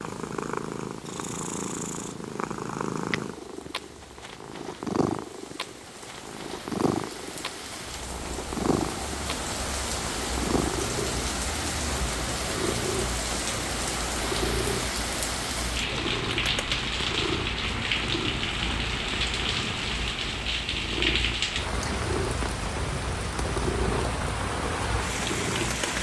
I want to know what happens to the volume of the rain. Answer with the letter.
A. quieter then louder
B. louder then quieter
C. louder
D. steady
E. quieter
C.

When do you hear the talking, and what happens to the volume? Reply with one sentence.
You can't hear the talking here.